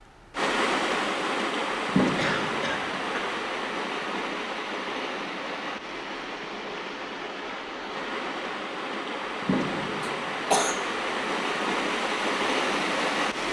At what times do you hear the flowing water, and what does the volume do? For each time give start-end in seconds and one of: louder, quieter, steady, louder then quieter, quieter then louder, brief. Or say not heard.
0.3-13.4 quieter then louder.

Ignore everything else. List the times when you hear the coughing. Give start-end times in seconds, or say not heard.
2.1-3.4, 10.0-10.8.